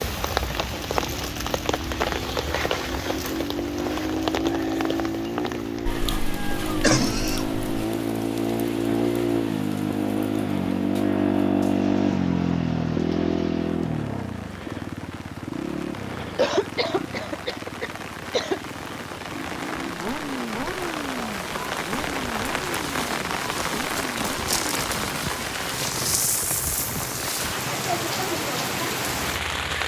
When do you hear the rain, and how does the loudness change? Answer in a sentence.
The rain can be heard from 0.0 to 29.8 s, getting quieter then louder.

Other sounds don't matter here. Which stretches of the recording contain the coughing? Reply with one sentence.
The coughing can be heard from 5.8 to 7.8 s and from 16.4 to 18.6 s.